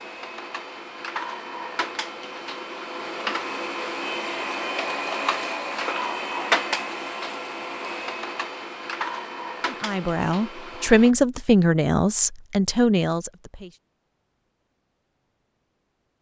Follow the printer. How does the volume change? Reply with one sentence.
The volume of the printer goes up, then down.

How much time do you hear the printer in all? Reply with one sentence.
You can hear the printer for 11 seconds altogether.